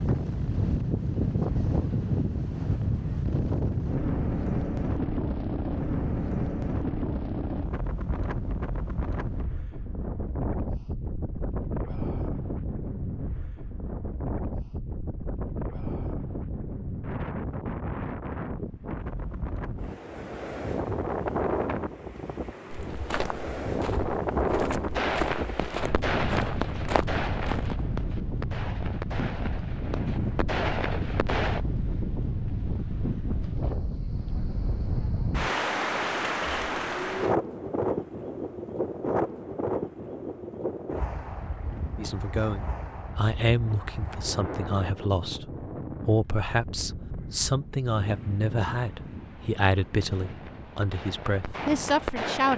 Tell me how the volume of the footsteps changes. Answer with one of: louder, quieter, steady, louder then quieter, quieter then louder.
quieter then louder.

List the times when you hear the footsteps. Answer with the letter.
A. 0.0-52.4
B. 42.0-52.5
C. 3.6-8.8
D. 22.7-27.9
D.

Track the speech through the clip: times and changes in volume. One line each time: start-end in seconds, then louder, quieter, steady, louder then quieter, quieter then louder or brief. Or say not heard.
42.0-52.5 steady.